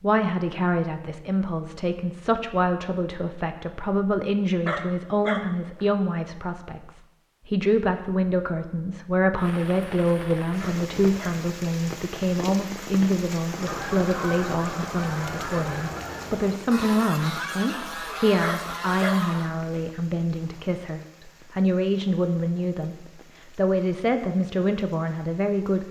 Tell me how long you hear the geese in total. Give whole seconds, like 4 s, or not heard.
6 s.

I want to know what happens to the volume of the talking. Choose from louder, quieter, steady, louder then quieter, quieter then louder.
steady.